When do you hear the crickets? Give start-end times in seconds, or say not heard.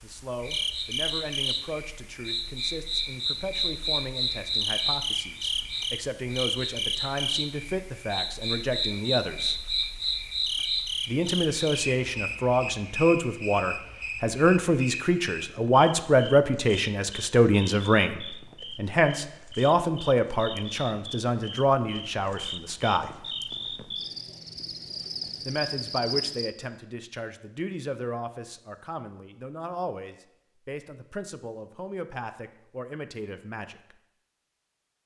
0.0-26.5.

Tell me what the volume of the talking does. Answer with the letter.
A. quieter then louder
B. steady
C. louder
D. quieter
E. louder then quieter
E.